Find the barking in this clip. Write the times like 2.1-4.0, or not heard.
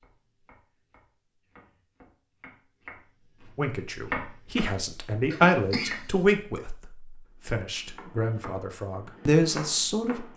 not heard.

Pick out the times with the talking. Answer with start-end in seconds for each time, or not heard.
3.5-10.3.